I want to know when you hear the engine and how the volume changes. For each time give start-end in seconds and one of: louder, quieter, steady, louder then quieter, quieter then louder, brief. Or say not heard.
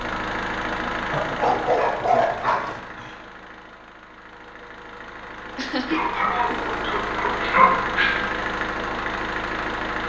0.0-10.0 quieter then louder.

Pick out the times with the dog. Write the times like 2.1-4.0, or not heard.
1.1-2.8, 5.9-8.2.